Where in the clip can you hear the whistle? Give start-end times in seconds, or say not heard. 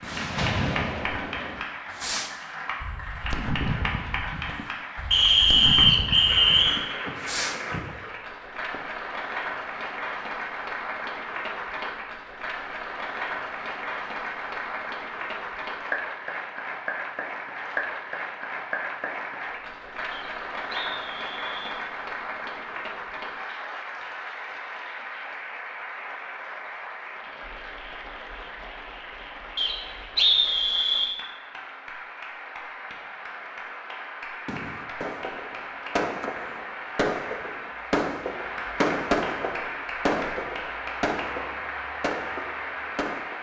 5.1-6.8, 20.1-21.8, 29.6-31.1.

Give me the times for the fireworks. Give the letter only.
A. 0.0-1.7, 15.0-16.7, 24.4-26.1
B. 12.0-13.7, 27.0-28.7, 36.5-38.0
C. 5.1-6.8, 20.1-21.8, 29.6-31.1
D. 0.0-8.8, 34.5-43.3
D.